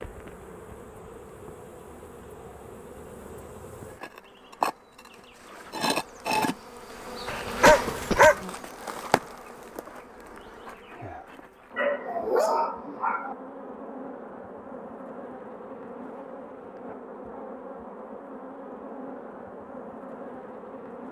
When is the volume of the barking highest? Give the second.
8 s.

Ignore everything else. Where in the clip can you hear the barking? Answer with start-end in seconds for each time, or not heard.
7.3-8.4, 11.8-13.3.